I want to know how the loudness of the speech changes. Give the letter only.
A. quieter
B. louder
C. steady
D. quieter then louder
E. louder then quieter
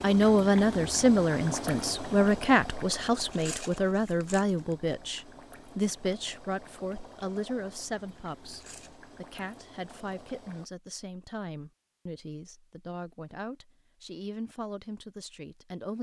A.